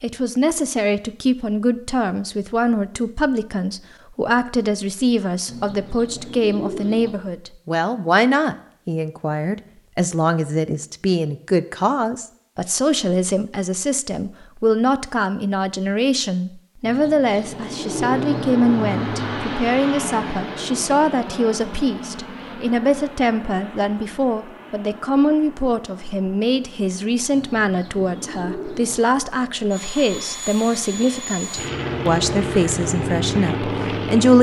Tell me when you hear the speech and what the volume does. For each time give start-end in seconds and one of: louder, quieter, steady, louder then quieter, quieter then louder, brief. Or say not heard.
0.0-34.3 steady.